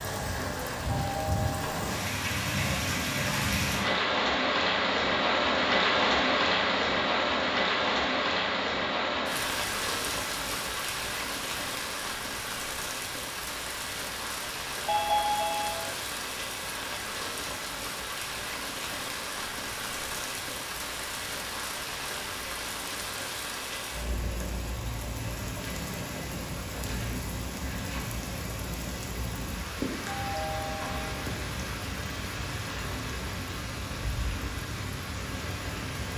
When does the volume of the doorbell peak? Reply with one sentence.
The volume of the doorbell peaks at 15 seconds.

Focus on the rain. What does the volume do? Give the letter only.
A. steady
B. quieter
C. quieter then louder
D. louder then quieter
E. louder
B.